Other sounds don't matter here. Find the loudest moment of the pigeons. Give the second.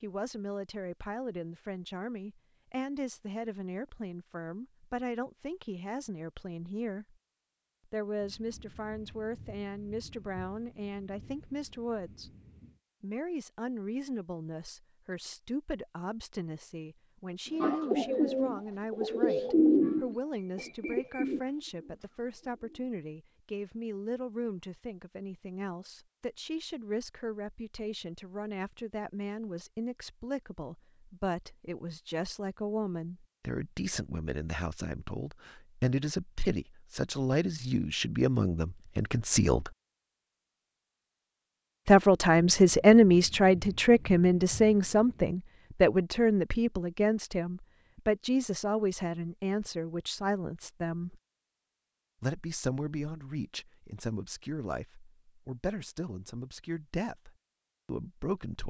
20 s.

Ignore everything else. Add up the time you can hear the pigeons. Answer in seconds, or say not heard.
5 s.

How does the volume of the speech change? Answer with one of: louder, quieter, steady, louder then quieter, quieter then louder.
louder then quieter.